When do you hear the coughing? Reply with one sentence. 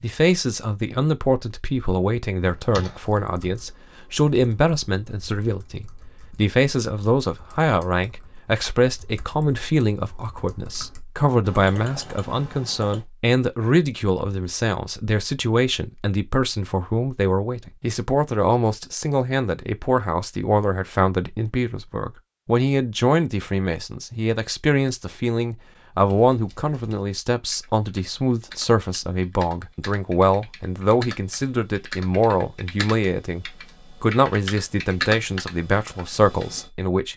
You can't hear the coughing here.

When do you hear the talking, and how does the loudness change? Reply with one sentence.
The talking can be heard from 0.0 to 37.1 s, at a steady volume.